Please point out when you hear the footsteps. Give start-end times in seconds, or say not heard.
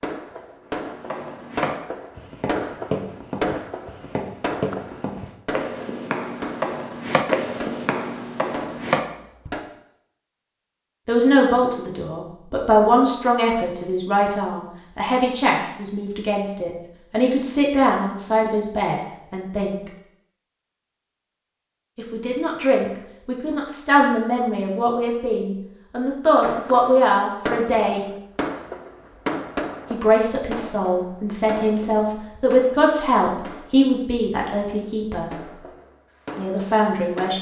0.8-9.5.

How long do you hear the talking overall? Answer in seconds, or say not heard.
21 s.